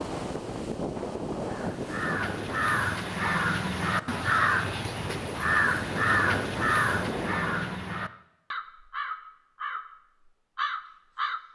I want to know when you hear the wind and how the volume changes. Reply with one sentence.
You can hear the wind from 0.0 to 7.8 s, getting quieter then louder.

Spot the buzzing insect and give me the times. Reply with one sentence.
The buzzing insect can't be heard in this clip.